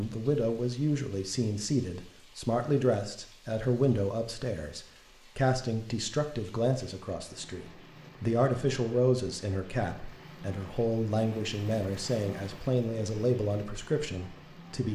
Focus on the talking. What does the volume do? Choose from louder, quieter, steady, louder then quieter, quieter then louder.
steady.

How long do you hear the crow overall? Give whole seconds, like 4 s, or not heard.
not heard.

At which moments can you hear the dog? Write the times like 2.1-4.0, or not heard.
not heard.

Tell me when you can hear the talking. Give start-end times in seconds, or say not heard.
0.0-14.8.